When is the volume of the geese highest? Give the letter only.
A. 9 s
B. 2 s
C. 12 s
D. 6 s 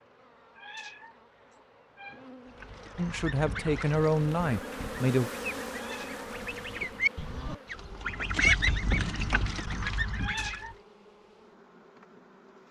A.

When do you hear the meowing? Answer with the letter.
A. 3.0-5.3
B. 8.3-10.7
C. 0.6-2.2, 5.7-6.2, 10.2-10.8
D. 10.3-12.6
C.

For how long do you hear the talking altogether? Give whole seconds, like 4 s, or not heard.
2 s.